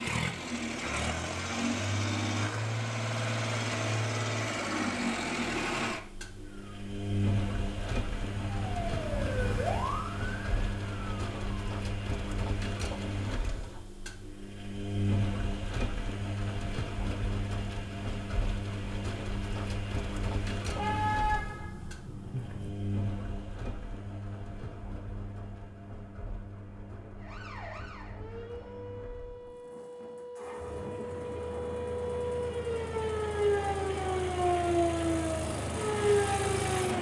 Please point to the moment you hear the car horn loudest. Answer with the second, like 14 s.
21 s.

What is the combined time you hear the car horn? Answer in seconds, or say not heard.
2 s.